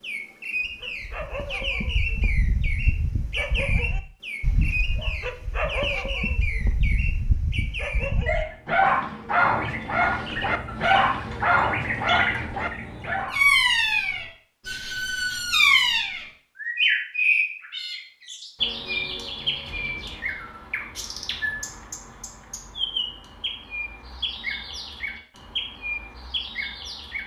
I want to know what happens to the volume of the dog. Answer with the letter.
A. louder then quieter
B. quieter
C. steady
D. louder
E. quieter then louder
D.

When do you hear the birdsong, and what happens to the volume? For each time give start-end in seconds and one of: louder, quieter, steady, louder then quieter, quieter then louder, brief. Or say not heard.
0.0-27.2 louder then quieter.